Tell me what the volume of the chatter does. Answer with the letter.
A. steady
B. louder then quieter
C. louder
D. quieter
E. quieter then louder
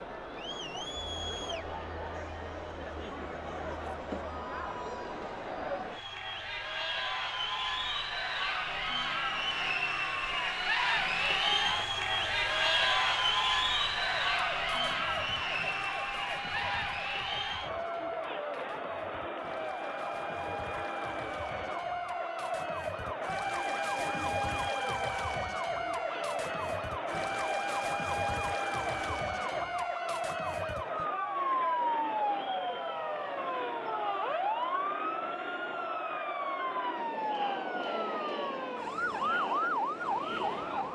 B.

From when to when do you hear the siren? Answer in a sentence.
The siren can be heard from 14.0 to 40.9 s.